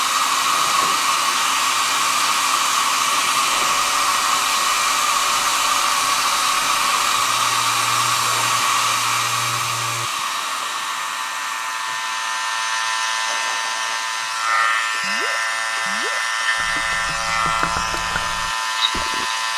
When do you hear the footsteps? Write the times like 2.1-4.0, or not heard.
not heard.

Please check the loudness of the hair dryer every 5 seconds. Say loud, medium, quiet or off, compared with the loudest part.
loud, loud, medium, quiet.